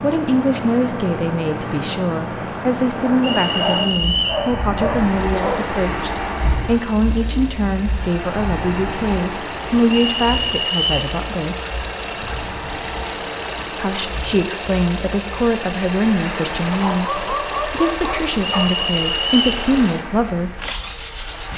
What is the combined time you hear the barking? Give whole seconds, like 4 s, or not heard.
5 s.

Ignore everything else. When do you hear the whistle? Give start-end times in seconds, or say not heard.
3.2-4.5, 9.9-11.1, 18.4-19.6.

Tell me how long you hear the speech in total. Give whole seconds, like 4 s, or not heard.
18 s.